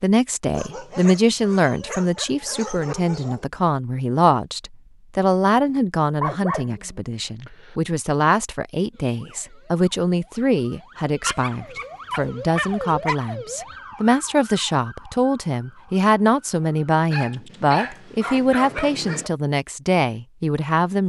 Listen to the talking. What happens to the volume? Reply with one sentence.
The loudness of the talking stays about the same.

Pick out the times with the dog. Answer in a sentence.
The dog can be heard from 0.5 to 3.5 s, from 6.2 to 7.8 s, from 11.2 to 13.2 s and from 17.1 to 19.3 s.